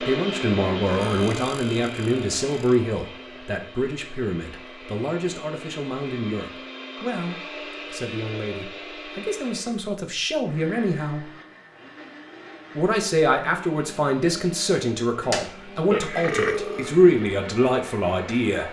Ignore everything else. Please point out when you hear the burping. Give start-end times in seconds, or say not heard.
0.8-2.8, 15.2-16.9.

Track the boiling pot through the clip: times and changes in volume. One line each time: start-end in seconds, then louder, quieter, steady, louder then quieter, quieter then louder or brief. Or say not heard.
not heard.